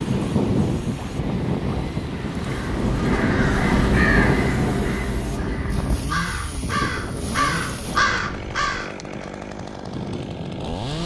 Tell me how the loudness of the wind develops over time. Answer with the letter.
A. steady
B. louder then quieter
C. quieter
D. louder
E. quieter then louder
C.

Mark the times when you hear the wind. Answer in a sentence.
The wind can be heard from 0.0 to 11.0 s.